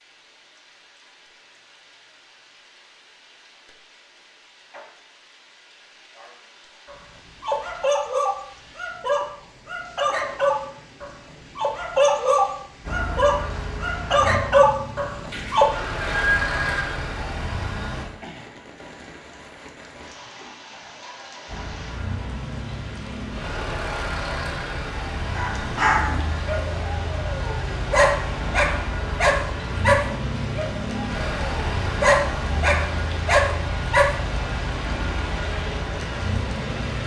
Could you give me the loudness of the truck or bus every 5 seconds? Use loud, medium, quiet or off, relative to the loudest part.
off, off, loud, loud, loud, loud, loud, loud.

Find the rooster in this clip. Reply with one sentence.
You can hear the rooster from 15.3 to 16.9 s.